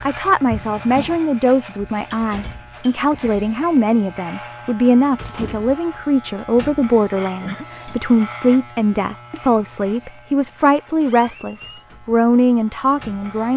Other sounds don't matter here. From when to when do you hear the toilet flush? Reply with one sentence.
The toilet flush can't be heard in this clip.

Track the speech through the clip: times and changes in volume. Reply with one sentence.
The speech can be heard from 0.0 to 13.5 s, at a steady volume.